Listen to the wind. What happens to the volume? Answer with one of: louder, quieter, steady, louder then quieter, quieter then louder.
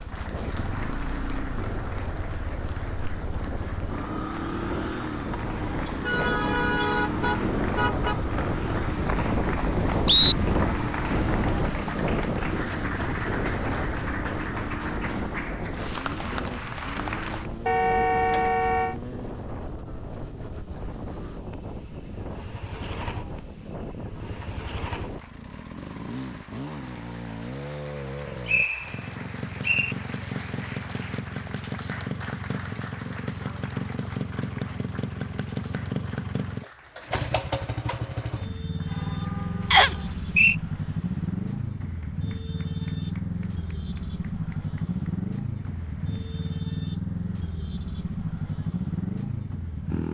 louder then quieter.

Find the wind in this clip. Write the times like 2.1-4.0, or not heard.
0.0-25.2.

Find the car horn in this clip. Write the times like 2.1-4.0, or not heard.
5.8-8.2, 17.6-18.9, 38.9-40.1.